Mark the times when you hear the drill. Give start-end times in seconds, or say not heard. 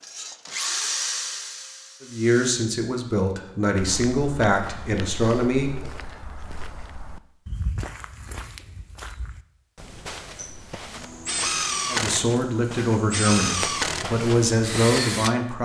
0.0-2.5, 10.3-15.4.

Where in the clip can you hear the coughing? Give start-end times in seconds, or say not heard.
not heard.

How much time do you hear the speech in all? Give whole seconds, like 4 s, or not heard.
8 s.